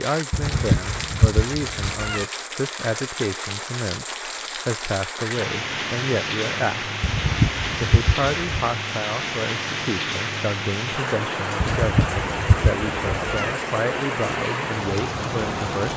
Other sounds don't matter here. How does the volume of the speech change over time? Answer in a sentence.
The volume of the speech stays about the same.